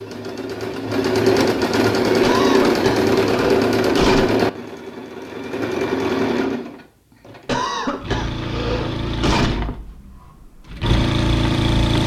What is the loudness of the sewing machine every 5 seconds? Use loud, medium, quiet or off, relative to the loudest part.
loud, medium, loud.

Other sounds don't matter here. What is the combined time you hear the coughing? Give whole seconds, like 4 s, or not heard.
4 s.